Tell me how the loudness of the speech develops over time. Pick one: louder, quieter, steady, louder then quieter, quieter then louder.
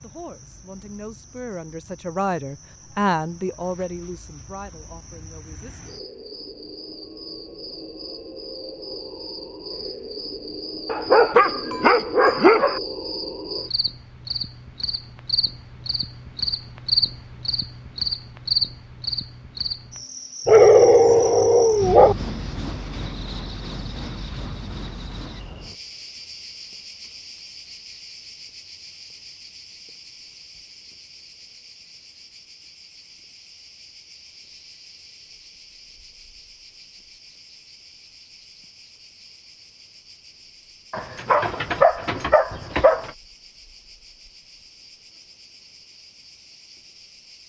louder then quieter.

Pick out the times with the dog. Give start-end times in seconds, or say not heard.
10.8-12.8, 20.4-22.1, 40.9-43.1.